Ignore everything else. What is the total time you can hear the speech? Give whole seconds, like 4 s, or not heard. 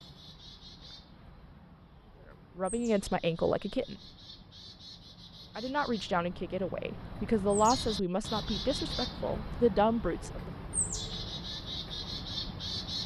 7 s.